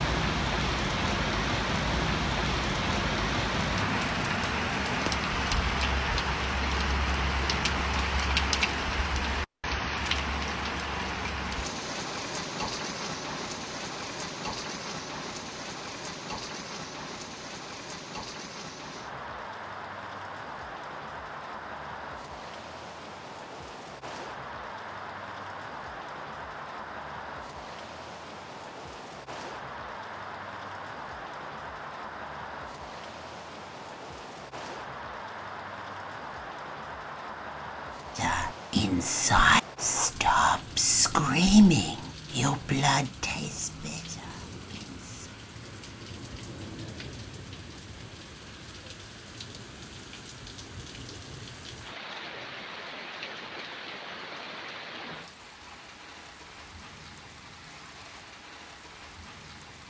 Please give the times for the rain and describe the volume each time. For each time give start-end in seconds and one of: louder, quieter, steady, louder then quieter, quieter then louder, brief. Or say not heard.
0.0-59.8 quieter.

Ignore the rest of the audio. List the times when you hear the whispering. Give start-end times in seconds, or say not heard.
38.1-45.3.